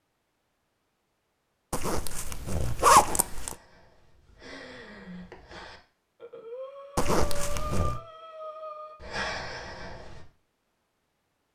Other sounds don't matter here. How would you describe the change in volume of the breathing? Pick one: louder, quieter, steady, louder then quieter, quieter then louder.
louder.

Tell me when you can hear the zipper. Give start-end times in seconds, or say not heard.
1.7-3.5, 7.0-8.0.